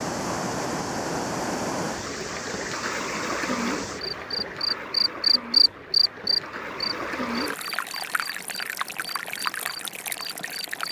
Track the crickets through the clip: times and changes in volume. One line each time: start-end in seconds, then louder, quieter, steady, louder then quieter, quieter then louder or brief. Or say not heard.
0.0-10.8 louder then quieter.